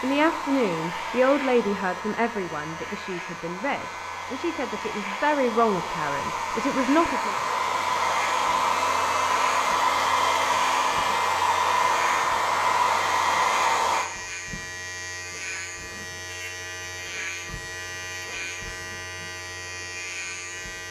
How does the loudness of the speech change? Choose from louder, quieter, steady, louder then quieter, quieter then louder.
quieter then louder.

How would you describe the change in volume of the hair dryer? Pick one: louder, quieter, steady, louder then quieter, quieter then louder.
louder.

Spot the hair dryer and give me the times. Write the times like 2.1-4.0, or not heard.
0.0-14.1.